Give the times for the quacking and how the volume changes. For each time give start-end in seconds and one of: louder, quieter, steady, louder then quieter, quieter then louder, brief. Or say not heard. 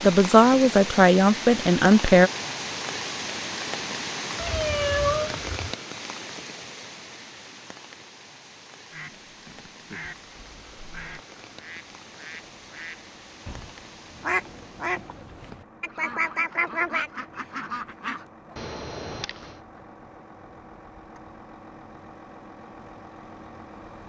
8.9-18.2 louder.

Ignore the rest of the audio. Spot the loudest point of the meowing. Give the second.
5 s.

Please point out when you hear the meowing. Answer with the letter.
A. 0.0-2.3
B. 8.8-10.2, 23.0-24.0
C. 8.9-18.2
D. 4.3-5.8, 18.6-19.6
D.